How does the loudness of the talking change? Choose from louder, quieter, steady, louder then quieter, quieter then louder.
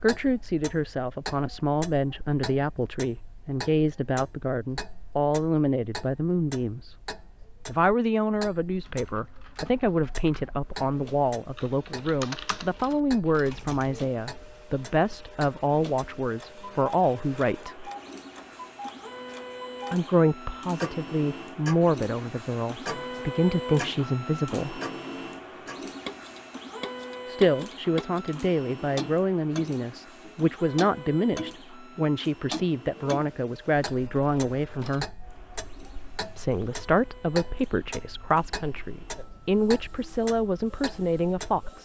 steady.